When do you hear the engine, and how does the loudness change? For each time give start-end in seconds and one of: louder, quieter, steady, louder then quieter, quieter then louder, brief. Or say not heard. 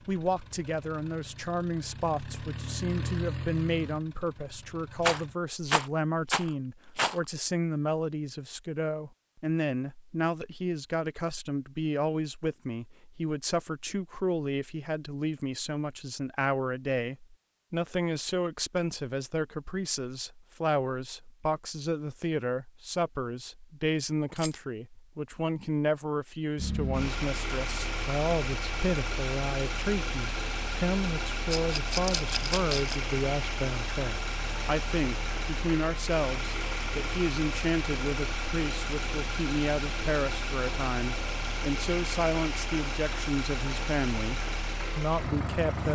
0.0-5.3 louder then quieter
26.6-45.8 steady.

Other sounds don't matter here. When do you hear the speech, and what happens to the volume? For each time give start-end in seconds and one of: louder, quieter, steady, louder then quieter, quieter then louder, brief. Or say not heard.
0.1-45.8 steady.